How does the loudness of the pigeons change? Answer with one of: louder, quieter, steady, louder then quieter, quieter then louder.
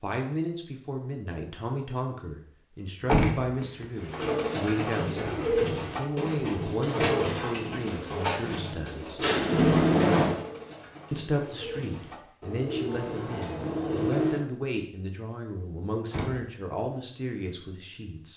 quieter then louder.